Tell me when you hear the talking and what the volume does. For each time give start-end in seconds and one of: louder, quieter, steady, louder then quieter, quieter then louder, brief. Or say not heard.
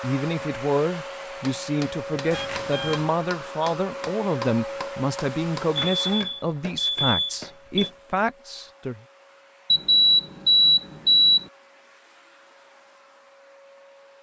0.0-9.0 steady.